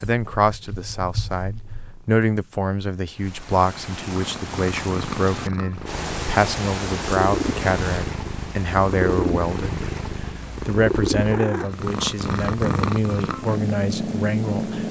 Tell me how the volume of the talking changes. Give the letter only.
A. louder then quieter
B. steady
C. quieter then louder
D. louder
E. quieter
B.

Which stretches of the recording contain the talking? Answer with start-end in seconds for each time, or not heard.
0.0-14.8.